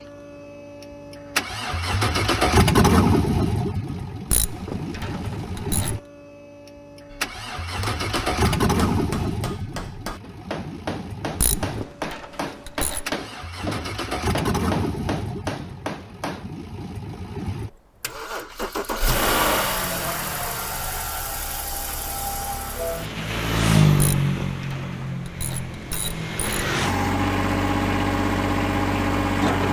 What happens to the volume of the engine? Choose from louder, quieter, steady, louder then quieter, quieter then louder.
quieter then louder.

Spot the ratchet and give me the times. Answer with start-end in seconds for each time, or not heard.
4.3-6.0, 11.4-13.1, 24.0-26.6.